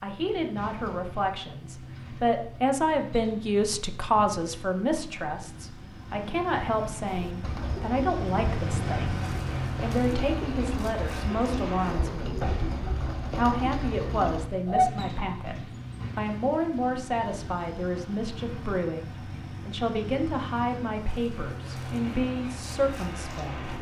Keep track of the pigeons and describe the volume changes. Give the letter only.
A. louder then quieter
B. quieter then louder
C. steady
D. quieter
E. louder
C.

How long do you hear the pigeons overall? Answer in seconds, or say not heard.
8 s.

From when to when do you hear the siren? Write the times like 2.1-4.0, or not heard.
not heard.